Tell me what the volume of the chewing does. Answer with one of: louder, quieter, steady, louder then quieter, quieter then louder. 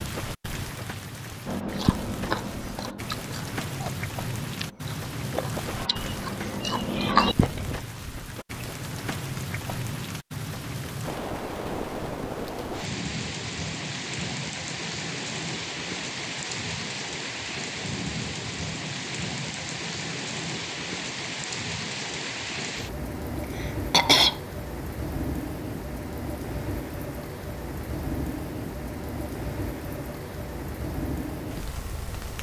quieter then louder.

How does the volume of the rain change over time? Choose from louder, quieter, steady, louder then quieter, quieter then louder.
steady.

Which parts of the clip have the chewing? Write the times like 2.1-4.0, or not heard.
1.4-7.8.